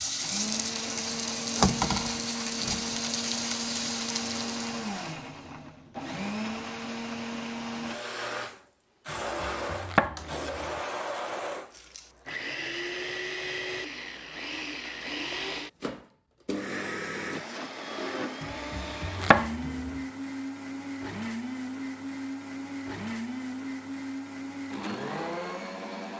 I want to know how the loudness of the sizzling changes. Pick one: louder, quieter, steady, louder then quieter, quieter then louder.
louder then quieter.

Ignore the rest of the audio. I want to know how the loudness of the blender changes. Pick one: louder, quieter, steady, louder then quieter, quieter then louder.
steady.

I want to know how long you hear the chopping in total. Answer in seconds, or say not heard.
3 s.